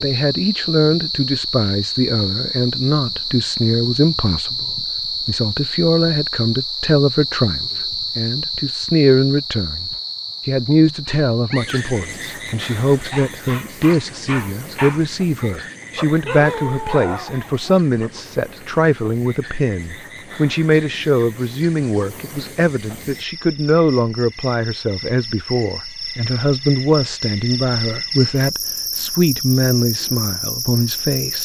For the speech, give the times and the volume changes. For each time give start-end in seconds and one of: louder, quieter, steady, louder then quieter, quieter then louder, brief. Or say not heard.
0.0-31.4 steady.